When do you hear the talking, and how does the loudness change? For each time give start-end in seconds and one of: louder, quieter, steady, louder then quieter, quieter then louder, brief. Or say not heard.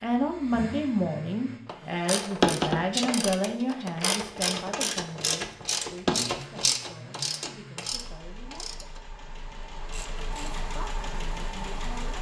0.0-9.0 quieter
10.6-12.1 brief.